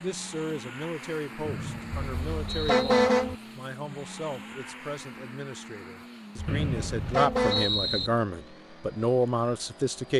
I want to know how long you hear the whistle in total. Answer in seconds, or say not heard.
3 s.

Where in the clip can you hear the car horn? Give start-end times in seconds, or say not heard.
2.0-3.4, 6.3-7.7.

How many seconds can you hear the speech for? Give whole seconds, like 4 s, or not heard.
10 s.